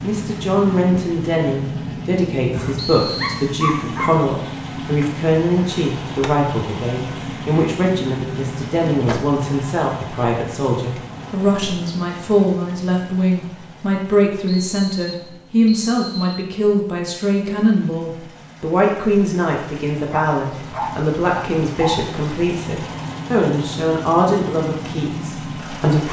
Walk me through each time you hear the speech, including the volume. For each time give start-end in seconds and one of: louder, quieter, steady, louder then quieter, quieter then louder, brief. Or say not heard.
0.0-26.0 steady.